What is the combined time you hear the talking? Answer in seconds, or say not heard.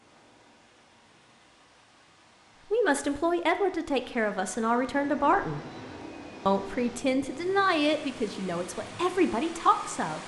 7 s.